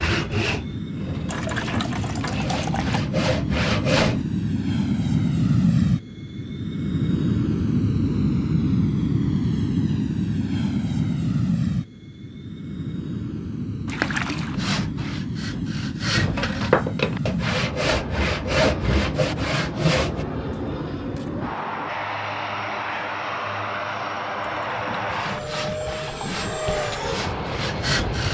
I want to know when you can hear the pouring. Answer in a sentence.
You can hear the pouring from 1.2 to 3.0 s, from 13.8 to 14.6 s and from 24.4 to 26.4 s.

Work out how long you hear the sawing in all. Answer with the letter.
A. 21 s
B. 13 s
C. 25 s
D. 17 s
B.